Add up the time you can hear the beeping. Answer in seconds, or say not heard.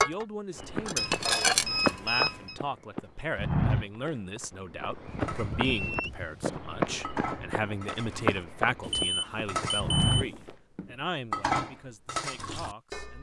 5 s.